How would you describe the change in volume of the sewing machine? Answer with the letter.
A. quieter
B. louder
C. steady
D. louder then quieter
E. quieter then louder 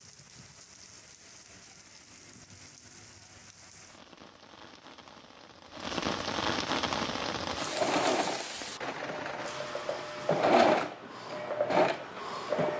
E.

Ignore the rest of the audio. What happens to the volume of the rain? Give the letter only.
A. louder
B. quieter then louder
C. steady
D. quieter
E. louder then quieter
E.